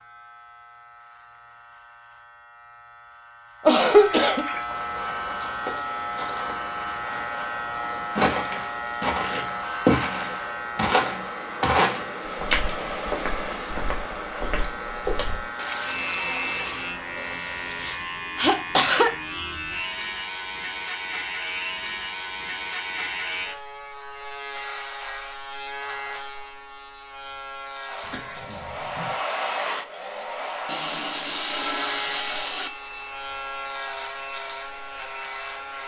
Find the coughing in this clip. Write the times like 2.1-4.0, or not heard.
3.6-4.5, 17.3-19.1, 28.0-29.1.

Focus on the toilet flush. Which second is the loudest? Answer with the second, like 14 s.
32 s.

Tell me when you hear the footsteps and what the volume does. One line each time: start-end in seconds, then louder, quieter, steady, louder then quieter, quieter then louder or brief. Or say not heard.
4.5-15.4 louder then quieter.